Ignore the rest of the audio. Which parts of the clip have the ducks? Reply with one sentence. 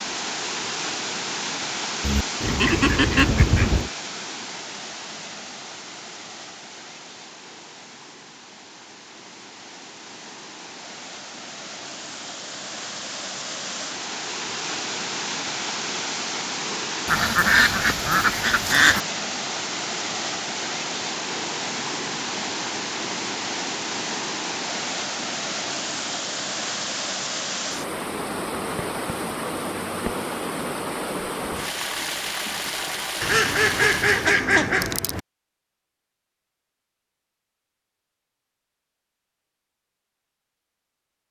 You can hear the ducks from 2.0 to 3.9 s, from 17.1 to 19.0 s and from 33.2 to 35.2 s.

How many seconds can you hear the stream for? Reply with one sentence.
The stream can be heard for 34 seconds in total.